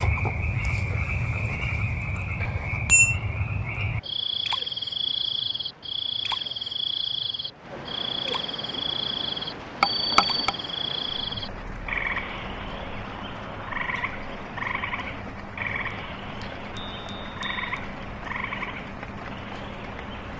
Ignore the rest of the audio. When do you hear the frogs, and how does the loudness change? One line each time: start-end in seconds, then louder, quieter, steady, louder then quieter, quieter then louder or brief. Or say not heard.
0.0-20.3 quieter.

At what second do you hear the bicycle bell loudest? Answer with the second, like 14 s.
3 s.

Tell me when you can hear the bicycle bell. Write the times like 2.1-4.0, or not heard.
2.4-3.1, 9.8-10.6, 16.8-17.8.